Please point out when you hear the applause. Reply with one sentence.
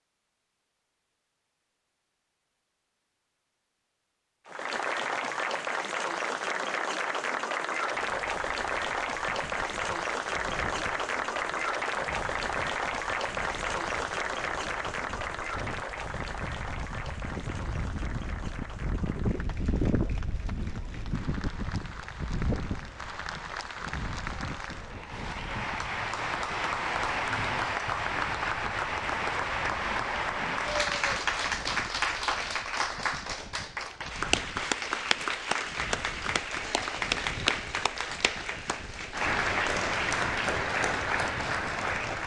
You can hear the applause from 4.5 to 42.2 s.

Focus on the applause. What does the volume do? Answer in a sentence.
The volume of the applause goes down, then up.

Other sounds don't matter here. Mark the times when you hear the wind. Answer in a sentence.
The wind can be heard from 8.0 to 42.1 s.